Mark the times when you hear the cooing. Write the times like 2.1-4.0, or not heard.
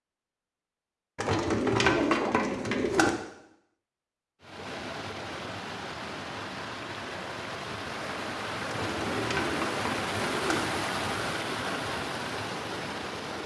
1.1-3.1, 8.7-10.6.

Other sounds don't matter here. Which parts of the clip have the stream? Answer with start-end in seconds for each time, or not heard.
4.4-13.4.